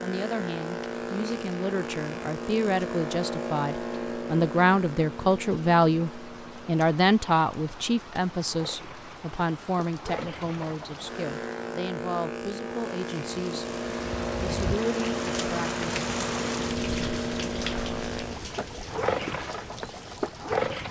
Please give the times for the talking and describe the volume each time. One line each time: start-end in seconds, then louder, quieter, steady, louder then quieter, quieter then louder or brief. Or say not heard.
0.0-13.8 louder then quieter
14.4-15.8 brief.